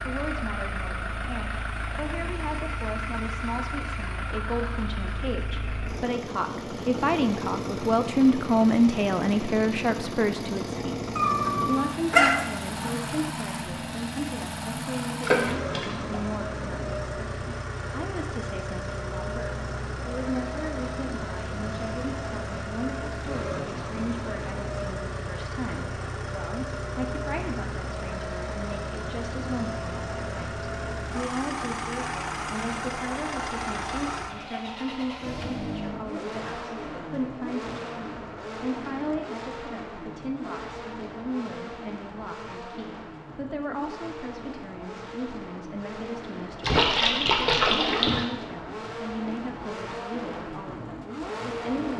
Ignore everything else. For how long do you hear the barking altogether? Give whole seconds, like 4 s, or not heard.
2 s.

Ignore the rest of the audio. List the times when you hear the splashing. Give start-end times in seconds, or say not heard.
15.2-16.2, 46.6-48.2.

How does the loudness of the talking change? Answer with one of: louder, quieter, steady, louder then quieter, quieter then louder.
quieter.